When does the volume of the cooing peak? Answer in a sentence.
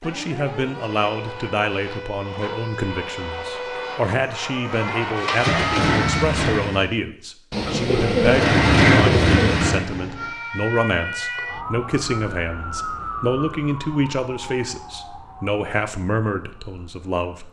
The loudest moment of the cooing is at 8 seconds.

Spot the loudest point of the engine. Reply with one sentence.
The volume of the engine peaks at 9 seconds.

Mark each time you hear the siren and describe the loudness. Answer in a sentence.
You can hear the siren from 0.0 to 6.3 s, getting louder; and from 10.2 to 17.4 s, getting quieter.